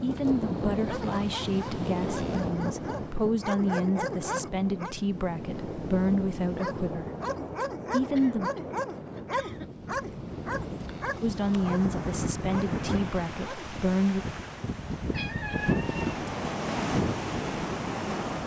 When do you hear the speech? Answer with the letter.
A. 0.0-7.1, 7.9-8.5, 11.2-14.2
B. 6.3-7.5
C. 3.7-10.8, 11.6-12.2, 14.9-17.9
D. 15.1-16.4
A.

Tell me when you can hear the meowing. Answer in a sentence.
You can hear the meowing from 15.1 to 16.4 s.